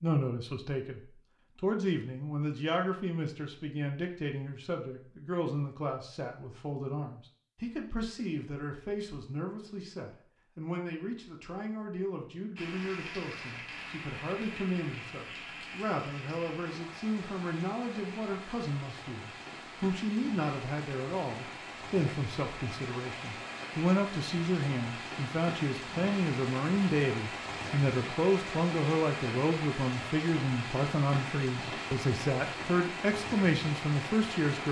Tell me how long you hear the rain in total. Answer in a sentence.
You can hear the rain for 22 seconds altogether.